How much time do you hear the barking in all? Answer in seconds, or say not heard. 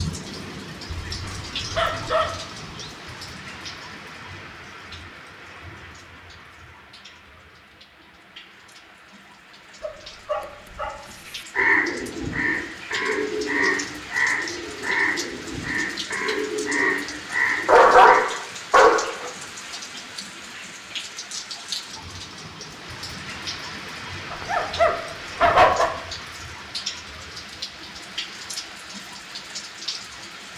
7 s.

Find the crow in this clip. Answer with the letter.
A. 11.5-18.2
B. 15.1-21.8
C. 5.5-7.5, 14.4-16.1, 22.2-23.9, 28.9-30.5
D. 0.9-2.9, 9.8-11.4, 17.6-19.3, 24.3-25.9
A.